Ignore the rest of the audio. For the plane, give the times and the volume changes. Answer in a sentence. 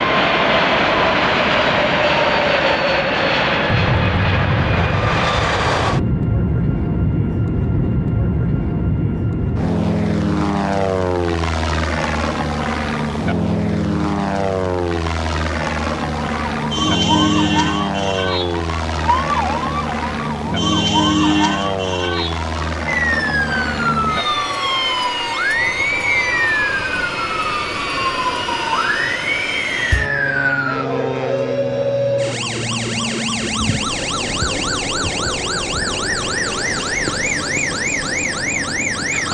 The plane can be heard from 0.0 to 39.2 s, getting quieter.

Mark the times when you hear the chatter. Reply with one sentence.
You can't hear the chatter here.